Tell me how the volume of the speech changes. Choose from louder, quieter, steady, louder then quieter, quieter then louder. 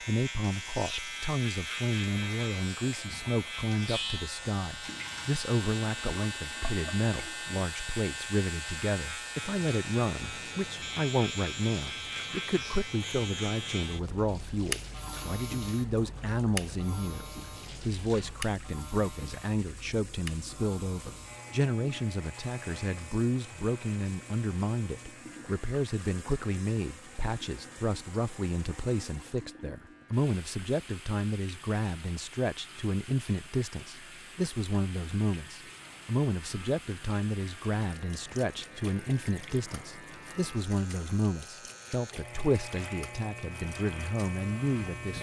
steady.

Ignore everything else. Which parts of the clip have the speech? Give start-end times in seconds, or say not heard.
0.0-45.1.